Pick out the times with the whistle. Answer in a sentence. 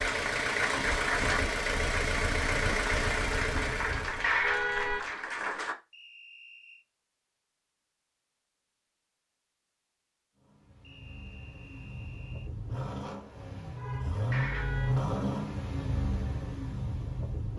The whistle can be heard from 5.9 to 6.8 s and from 10.8 to 12.5 s.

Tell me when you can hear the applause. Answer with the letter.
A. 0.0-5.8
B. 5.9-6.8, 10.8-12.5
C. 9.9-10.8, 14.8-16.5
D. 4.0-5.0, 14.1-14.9
A.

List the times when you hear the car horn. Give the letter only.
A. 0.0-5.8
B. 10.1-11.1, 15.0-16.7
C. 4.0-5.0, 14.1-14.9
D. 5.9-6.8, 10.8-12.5
C.